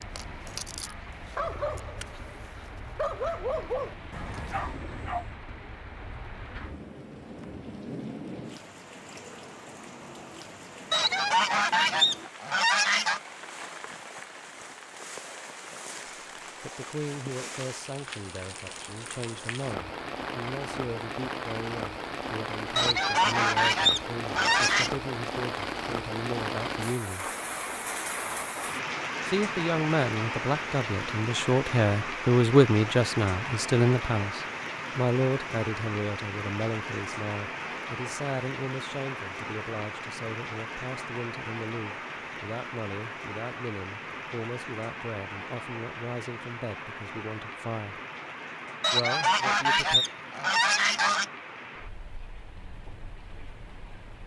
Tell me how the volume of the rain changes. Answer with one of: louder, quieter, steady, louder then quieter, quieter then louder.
louder then quieter.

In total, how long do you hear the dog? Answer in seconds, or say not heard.
5 s.